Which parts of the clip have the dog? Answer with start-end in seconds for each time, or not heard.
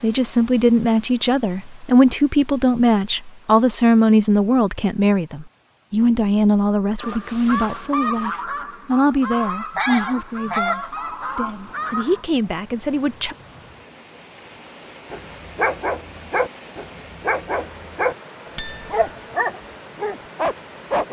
15.1-21.0.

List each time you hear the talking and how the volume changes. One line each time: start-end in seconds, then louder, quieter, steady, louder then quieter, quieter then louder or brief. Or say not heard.
0.0-13.3 quieter.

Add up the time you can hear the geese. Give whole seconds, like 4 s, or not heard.
5 s.